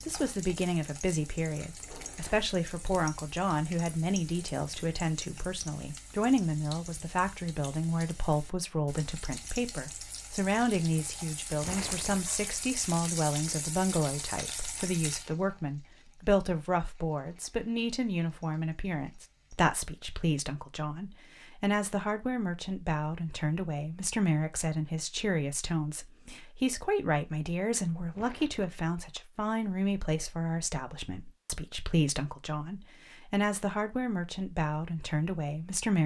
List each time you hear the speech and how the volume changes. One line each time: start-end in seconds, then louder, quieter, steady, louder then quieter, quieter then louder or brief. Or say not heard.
0.1-36.0 steady.